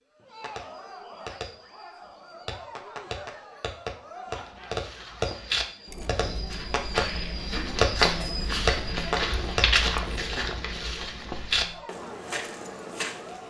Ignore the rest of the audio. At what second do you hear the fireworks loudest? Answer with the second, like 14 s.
8 s.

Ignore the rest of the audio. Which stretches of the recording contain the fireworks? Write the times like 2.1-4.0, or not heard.
0.3-9.7.